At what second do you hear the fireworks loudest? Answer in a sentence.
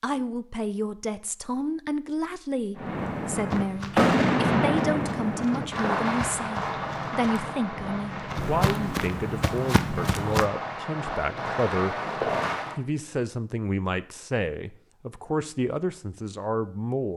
The volume of the fireworks peaks at 4 seconds.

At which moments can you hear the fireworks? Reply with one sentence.
You can hear the fireworks from 2.8 to 12.8 s.